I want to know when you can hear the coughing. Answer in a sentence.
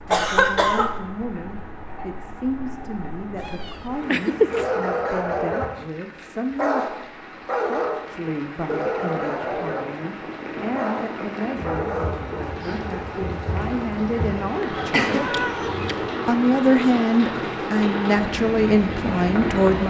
You can hear the coughing from 0.1 to 0.9 s and from 14.7 to 15.2 s.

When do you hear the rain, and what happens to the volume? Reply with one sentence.
You can hear the rain from 0.0 to 19.8 s, getting louder.